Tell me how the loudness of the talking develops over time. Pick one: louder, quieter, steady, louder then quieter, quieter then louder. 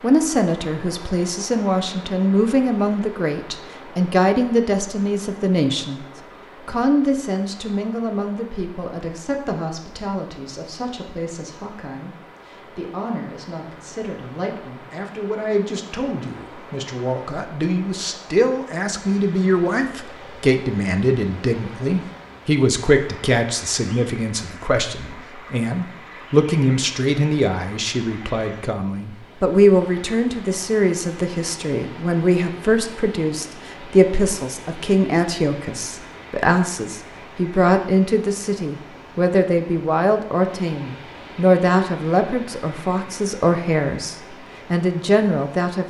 quieter then louder.